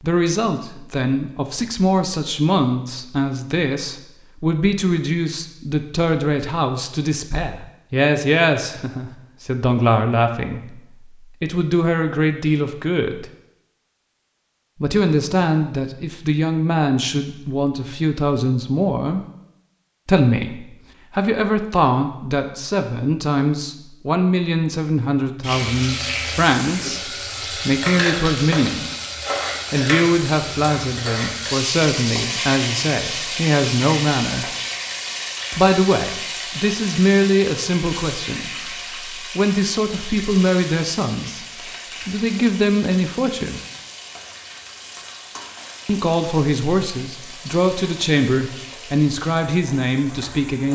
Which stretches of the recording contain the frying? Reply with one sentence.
The frying can be heard from 25.4 to 50.7 s.